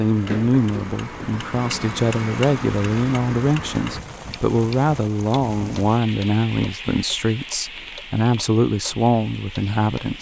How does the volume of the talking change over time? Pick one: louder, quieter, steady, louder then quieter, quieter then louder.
steady.